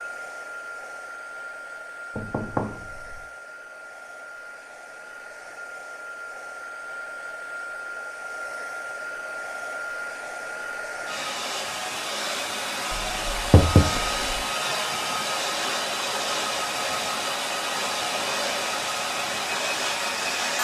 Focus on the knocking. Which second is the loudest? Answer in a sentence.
The volume of the knocking peaks at 14 seconds.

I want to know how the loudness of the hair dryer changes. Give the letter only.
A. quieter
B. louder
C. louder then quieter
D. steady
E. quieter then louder
B.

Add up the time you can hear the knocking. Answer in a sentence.
You can hear the knocking for 2 seconds altogether.